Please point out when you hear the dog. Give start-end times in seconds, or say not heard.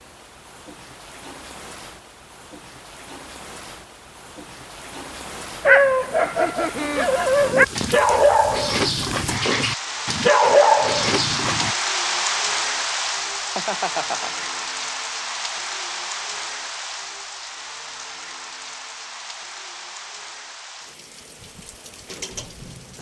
5.7-11.8.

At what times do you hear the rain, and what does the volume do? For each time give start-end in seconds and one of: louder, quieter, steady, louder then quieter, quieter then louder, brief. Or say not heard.
0.0-22.9 louder then quieter.